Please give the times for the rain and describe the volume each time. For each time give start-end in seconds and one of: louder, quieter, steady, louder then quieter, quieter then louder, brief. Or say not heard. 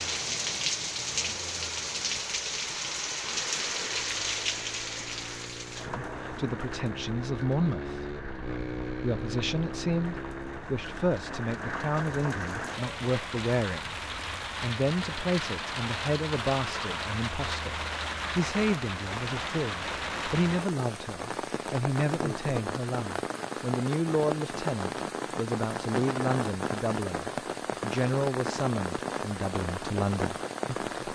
0.0-31.0 quieter then louder.